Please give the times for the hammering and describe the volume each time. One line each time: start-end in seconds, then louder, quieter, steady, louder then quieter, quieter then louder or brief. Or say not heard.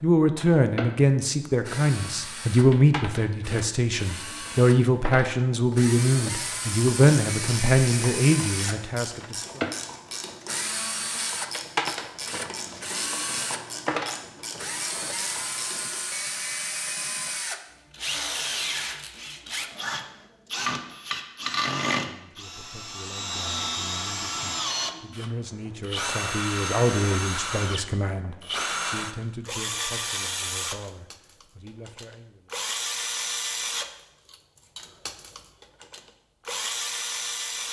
not heard.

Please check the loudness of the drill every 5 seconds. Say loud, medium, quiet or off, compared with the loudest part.
medium, loud, loud, loud, loud, loud, loud, loud.